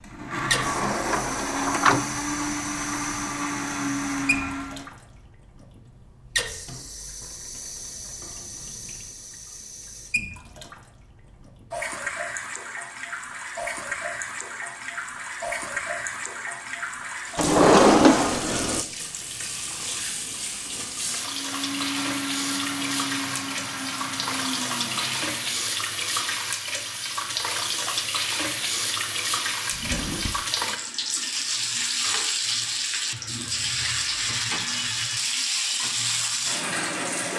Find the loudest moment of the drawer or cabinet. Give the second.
18 s.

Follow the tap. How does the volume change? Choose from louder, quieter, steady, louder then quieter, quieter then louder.
louder.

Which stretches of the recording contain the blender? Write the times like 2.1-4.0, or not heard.
0.0-4.8, 21.2-25.6.